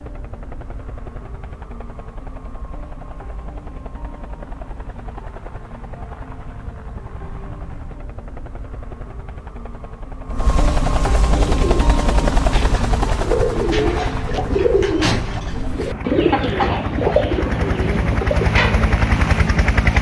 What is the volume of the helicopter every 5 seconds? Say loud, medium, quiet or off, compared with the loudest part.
quiet, quiet, loud, loud.